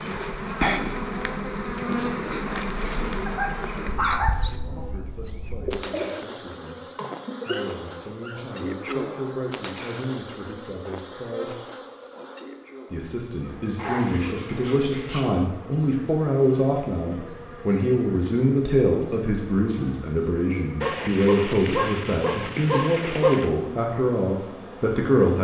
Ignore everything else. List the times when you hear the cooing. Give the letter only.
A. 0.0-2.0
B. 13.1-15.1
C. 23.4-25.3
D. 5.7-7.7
D.